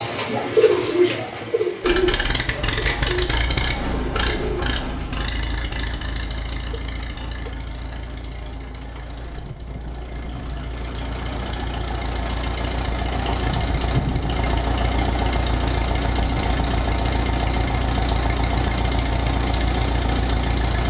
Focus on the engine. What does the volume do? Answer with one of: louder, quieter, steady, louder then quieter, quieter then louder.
quieter then louder.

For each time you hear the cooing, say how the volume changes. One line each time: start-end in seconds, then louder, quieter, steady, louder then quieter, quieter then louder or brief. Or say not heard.
0.0-4.7 quieter.